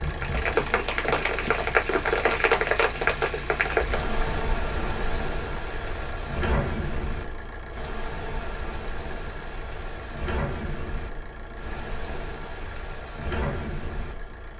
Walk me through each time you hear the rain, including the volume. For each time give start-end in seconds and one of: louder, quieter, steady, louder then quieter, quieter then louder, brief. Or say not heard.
0.0-14.5 quieter.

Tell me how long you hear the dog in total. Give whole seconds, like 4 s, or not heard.
not heard.